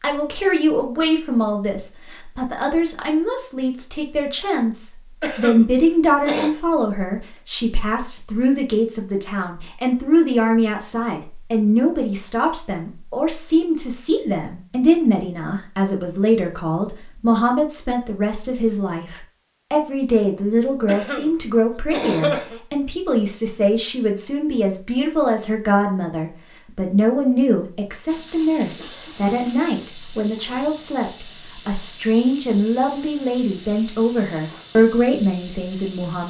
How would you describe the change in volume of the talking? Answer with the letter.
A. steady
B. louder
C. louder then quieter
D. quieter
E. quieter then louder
A.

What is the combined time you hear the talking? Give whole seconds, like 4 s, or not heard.
36 s.